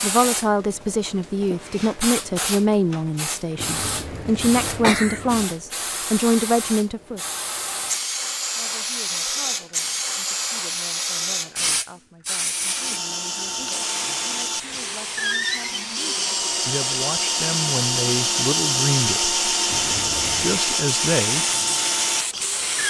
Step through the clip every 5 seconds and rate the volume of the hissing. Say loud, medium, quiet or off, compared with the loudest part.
loud, loud, loud, medium, loud.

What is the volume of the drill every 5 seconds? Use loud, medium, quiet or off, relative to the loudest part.
off, off, medium, loud, loud.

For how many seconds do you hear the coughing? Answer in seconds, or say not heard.
3 s.